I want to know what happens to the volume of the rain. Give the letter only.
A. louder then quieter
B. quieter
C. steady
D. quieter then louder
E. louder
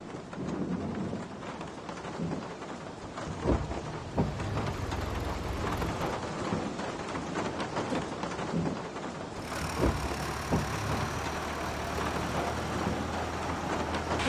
C.